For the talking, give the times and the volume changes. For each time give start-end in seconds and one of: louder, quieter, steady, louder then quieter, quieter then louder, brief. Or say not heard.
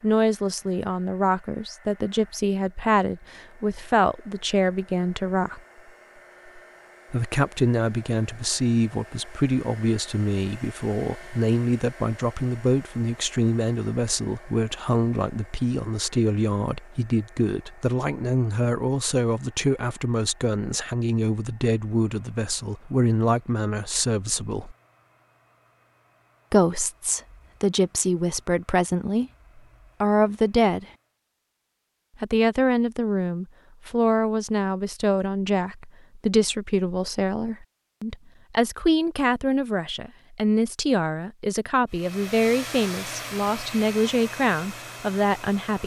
0.0-5.6 steady
7.1-24.8 steady
26.5-29.3 brief
30.0-30.9 brief
32.2-45.8 steady.